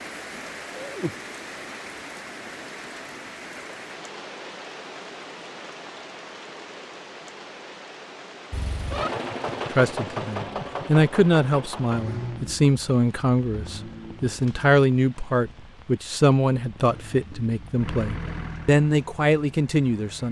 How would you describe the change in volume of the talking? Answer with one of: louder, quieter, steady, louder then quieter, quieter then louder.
steady.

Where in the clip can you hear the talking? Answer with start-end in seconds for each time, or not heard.
9.7-20.2.